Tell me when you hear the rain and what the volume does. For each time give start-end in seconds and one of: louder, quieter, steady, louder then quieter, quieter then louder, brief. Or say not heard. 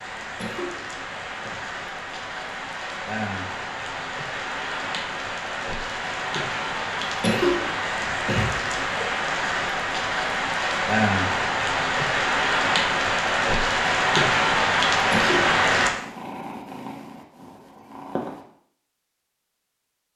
0.0-15.9 louder.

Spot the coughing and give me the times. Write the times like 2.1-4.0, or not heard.
0.2-1.6, 7.2-9.1, 14.9-15.6.